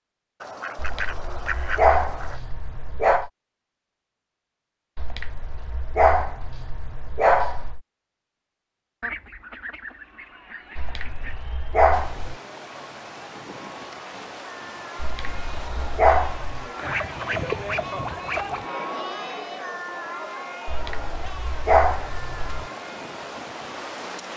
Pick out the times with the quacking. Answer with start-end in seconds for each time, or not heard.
0.4-2.4, 9.0-11.3, 16.8-18.6.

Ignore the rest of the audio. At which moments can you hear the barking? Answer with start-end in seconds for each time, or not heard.
0.8-3.3, 5.0-7.8, 10.8-12.3, 14.9-16.6, 20.6-22.7.